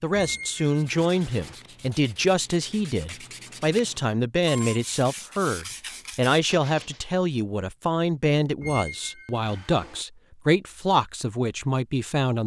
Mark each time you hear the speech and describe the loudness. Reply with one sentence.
You can hear the speech from 0.0 to 12.4 s, at a steady volume.